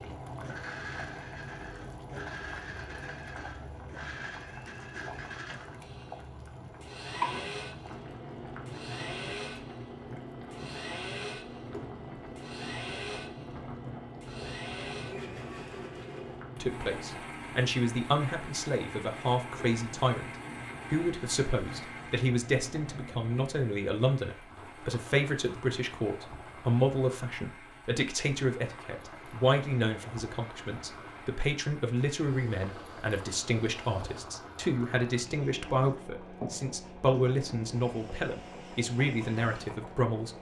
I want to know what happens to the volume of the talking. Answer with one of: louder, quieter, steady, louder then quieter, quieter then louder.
steady.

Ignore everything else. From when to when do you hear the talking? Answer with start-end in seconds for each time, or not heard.
16.6-20.3, 20.9-40.3.